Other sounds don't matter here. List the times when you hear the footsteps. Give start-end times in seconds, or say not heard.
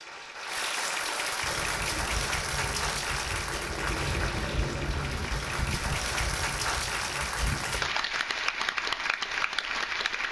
1.4-8.0.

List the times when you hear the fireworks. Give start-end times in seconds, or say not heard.
not heard.